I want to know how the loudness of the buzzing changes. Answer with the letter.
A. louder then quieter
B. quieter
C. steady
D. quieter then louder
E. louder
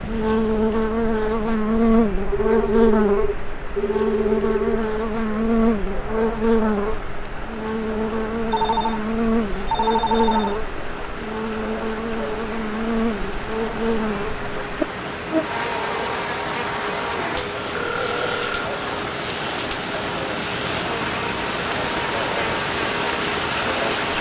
B.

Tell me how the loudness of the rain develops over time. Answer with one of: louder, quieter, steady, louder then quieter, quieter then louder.
louder.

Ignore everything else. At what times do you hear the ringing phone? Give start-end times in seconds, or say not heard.
2.3-4.8, 8.5-10.6, 17.8-18.7.